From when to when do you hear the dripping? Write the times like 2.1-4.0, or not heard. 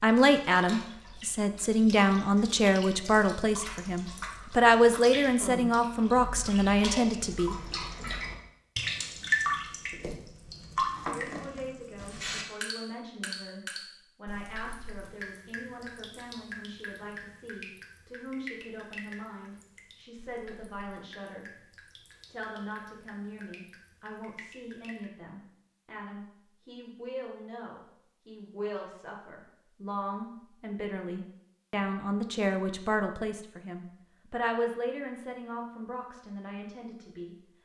0.0-25.1.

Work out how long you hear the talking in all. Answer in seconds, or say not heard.
33 s.